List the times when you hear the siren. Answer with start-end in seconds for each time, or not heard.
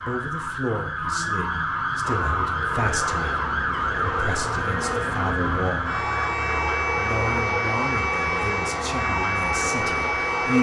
0.0-10.5.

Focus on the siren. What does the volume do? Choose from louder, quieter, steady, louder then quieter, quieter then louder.
steady.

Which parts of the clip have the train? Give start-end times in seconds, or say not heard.
2.0-10.5.